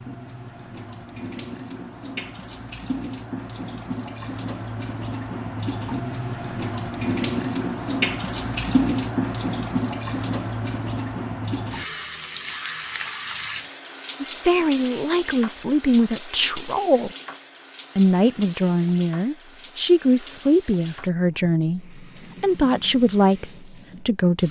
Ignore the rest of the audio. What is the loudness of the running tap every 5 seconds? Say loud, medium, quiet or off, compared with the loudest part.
medium, loud, medium, quiet, quiet.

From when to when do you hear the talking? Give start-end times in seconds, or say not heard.
14.2-17.1, 17.9-24.4.